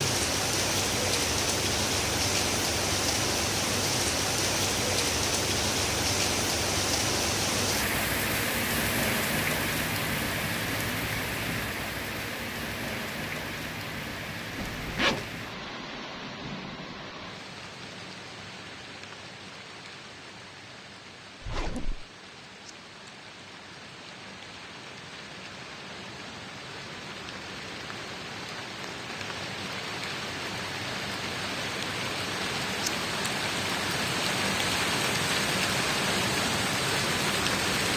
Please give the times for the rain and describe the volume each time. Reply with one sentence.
You can hear the rain from 0.0 to 37.9 s, getting quieter then louder.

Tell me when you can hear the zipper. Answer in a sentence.
The zipper can be heard from 14.6 to 15.3 s and from 21.4 to 22.1 s.